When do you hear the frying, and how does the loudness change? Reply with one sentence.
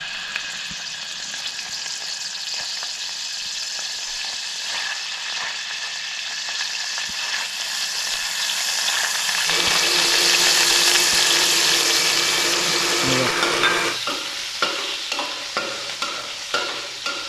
The frying can be heard from 0.0 to 17.2 s, getting louder then quieter.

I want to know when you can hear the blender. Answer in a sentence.
The blender can be heard from 9.4 to 14.0 s.